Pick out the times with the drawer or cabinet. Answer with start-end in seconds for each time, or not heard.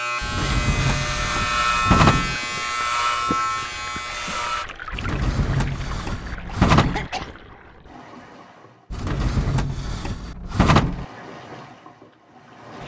0.2-2.4, 4.9-7.1, 8.9-11.1.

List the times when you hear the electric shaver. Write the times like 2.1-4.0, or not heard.
0.0-4.7.